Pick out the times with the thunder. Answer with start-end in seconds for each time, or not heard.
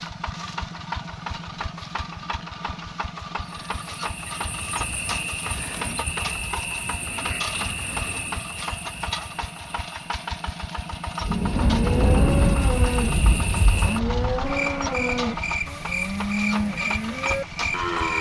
11.2-14.2.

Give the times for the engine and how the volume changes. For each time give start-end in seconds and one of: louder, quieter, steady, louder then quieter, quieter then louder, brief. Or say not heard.
0.0-18.1 steady.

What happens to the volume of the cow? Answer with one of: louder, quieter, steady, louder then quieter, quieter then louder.
steady.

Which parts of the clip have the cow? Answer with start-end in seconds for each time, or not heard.
11.5-18.1.